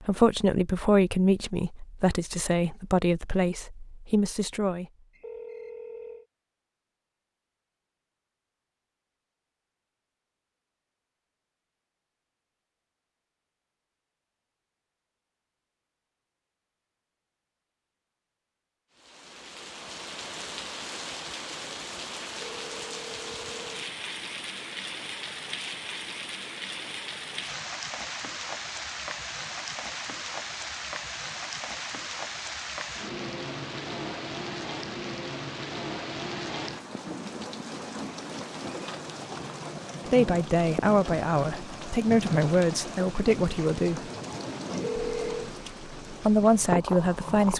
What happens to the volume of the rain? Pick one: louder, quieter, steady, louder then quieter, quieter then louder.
steady.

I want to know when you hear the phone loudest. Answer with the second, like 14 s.
45 s.